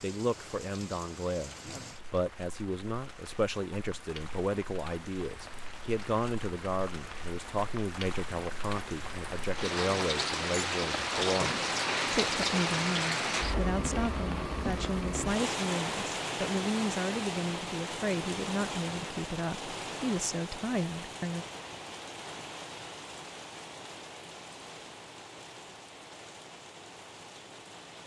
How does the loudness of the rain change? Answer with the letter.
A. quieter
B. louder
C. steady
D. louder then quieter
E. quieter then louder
D.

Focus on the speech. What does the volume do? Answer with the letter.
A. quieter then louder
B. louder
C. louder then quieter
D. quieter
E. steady
E.